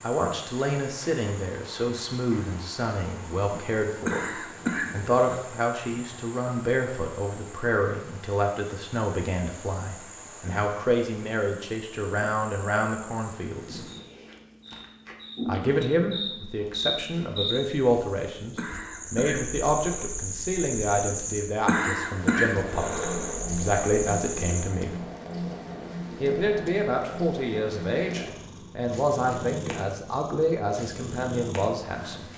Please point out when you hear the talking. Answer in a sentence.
You can hear the talking from 0.0 to 4.3 s, from 4.9 to 13.8 s, from 15.4 to 25.0 s and from 26.2 to 32.2 s.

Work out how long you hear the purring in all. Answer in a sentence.
The purring can be heard for 10 seconds in total.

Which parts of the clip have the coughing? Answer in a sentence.
You can hear the coughing from 4.0 to 5.4 s, from 18.6 to 20.1 s and from 21.6 to 23.4 s.